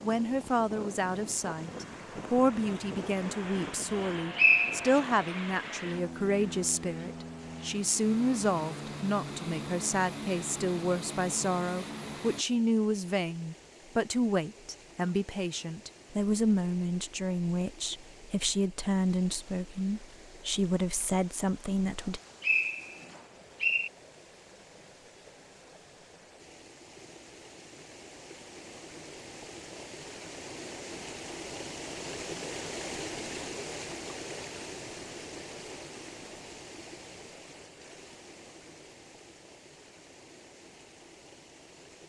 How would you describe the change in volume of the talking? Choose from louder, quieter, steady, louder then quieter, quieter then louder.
steady.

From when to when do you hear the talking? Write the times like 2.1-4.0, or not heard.
0.0-22.2.